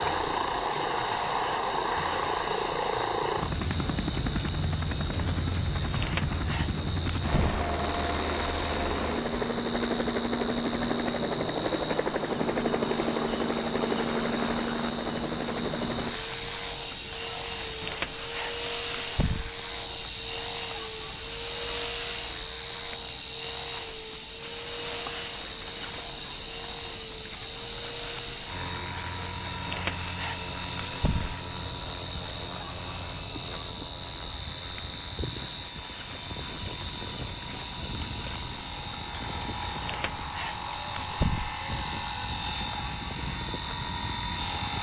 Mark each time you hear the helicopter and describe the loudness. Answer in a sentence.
The helicopter can be heard from 0.0 to 44.7 s, getting quieter.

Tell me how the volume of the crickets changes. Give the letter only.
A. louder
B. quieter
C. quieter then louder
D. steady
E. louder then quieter
D.